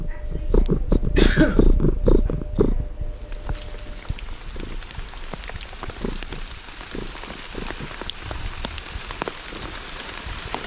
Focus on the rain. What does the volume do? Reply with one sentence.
The volume of the rain goes up.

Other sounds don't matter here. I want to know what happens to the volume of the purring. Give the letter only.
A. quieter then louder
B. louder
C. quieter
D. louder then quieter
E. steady
C.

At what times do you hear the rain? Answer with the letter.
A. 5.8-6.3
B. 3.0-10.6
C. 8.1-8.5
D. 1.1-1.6
B.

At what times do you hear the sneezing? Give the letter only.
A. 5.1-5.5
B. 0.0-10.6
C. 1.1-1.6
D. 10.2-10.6
C.